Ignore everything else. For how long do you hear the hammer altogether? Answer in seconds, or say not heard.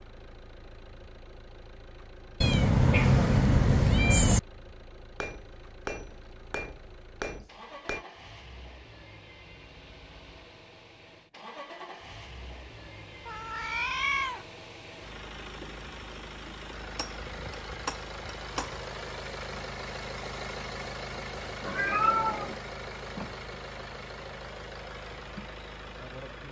5 s.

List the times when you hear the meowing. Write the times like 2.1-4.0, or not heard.
2.4-4.4, 13.2-14.4, 21.6-22.6.